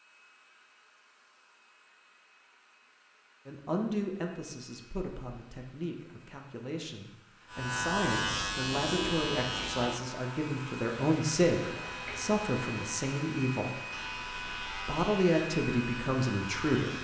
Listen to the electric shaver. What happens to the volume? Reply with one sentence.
The volume of the electric shaver goes down.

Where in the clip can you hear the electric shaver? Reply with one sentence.
The electric shaver can be heard from 7.5 to 16.9 s.